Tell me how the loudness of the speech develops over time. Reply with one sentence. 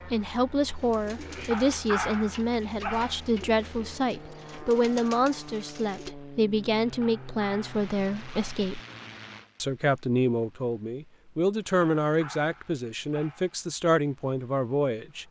The volume of the speech stays about the same.